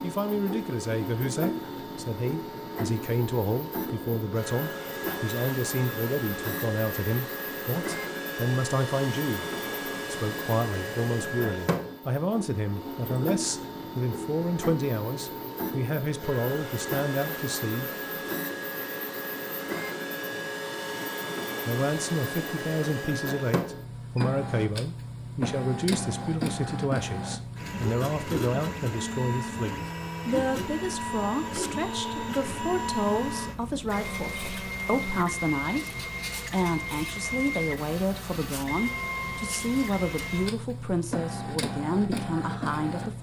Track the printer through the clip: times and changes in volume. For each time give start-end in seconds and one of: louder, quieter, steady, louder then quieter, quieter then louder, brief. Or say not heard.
0.0-43.1 steady.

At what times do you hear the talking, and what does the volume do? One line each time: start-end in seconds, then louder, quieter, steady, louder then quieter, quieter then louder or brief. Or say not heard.
0.0-9.4 steady
10.1-17.9 steady
21.6-43.1 steady.